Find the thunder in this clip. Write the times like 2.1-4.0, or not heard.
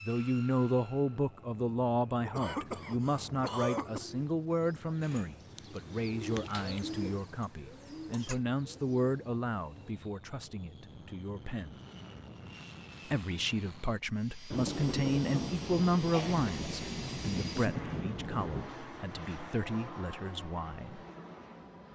14.5-18.8.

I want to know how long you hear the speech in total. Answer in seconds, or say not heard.
20 s.